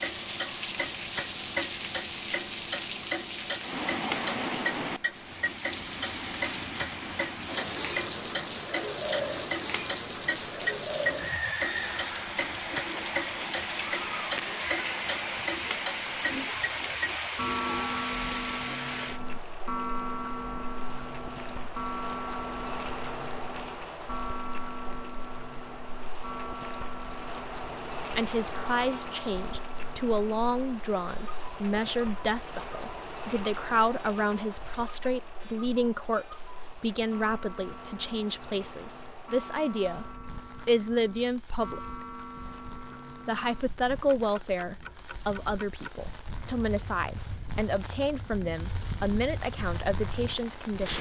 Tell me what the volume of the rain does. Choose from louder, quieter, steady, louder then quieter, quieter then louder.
quieter.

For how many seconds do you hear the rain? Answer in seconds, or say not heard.
51 s.